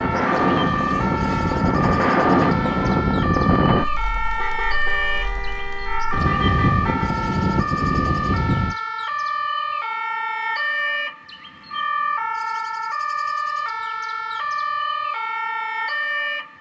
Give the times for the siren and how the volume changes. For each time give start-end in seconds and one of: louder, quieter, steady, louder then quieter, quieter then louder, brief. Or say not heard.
0.0-16.5 steady.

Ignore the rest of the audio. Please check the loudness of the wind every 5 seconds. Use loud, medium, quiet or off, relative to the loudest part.
loud, loud, off, off.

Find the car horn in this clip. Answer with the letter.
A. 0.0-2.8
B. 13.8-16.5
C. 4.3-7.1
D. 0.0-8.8
C.